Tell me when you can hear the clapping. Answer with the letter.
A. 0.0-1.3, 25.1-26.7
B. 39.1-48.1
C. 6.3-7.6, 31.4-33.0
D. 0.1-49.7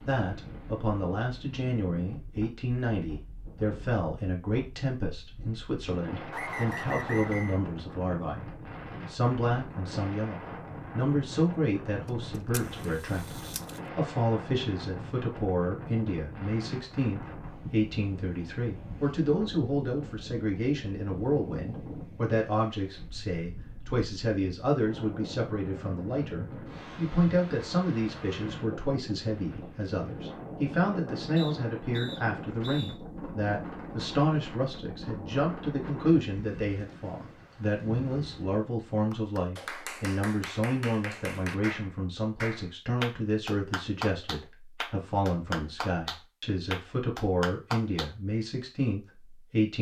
B.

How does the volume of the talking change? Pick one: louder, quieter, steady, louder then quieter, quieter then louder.
steady.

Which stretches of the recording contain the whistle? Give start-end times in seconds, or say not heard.
6.3-7.6, 31.4-33.0.